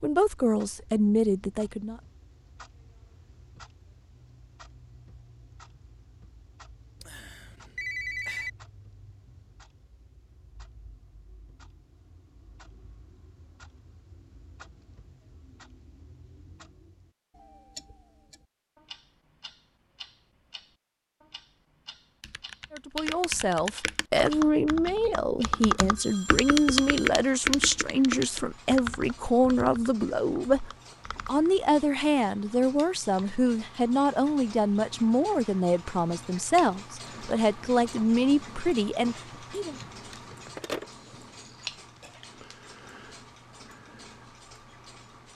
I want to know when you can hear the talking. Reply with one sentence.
You can hear the talking from 0.0 to 2.0 s and from 22.7 to 39.8 s.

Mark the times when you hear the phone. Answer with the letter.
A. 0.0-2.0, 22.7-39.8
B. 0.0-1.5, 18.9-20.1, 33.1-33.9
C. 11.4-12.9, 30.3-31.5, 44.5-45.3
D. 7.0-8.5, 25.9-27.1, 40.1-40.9
D.